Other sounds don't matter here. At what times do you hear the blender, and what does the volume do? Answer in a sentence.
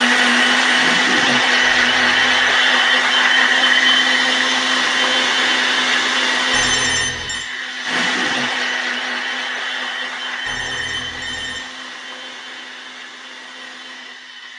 You can hear the blender from 0.0 to 14.5 s, getting quieter.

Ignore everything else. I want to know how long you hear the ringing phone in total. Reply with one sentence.
You can hear the ringing phone for 3 seconds altogether.